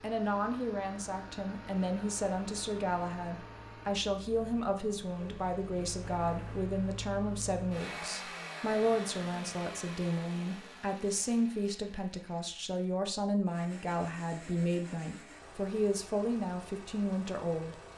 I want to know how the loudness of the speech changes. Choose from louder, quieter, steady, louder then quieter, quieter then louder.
steady.